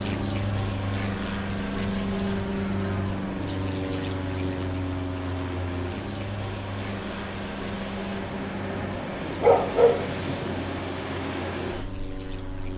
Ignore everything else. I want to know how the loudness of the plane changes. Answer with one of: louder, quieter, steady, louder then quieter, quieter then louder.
quieter.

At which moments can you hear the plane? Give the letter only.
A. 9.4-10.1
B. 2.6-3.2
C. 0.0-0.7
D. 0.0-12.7
D.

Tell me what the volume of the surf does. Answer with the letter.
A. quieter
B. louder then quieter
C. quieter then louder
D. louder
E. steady
D.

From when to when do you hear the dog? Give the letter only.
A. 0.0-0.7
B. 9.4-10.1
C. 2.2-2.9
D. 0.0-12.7
B.